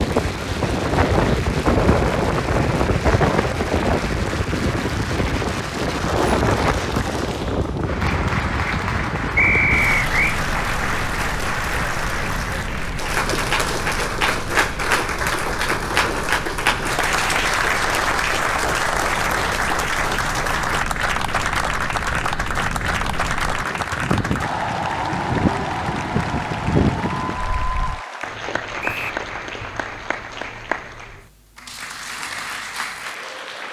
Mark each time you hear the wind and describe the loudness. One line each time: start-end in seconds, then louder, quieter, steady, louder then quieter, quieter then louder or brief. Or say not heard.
0.0-28.0 quieter then louder.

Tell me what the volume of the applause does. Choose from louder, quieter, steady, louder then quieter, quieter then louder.
louder then quieter.